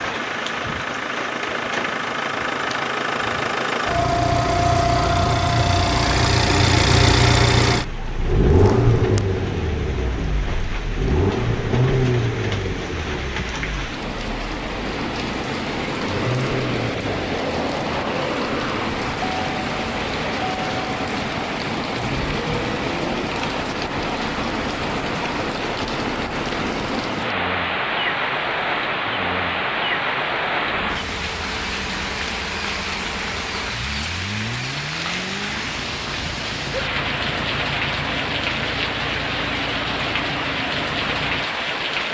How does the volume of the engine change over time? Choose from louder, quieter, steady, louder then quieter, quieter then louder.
quieter.